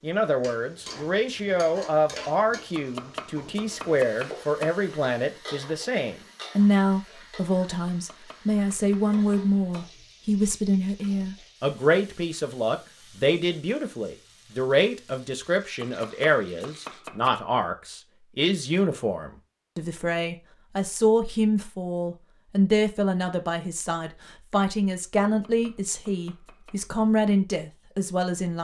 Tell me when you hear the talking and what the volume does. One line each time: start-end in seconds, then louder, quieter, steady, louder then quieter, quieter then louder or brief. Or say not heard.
0.0-28.5 steady.